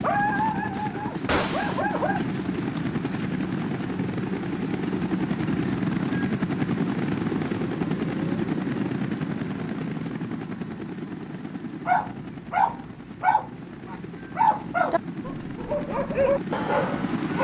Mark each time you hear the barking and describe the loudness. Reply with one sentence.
You can hear the barking briefly from 0.0 to 2.2 s; and from 11.8 to 17.3 s, getting quieter then louder.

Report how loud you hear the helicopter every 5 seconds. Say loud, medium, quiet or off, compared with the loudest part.
loud, loud, medium, medium.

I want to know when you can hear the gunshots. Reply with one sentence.
You can hear the gunshots from 1.2 to 1.8 s.